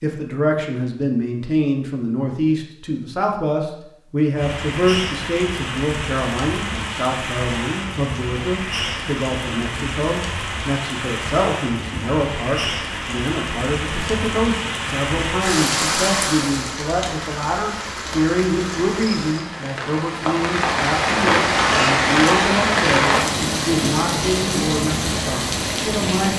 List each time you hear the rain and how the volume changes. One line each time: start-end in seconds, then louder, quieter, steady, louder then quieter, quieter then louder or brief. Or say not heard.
4.3-26.3 louder.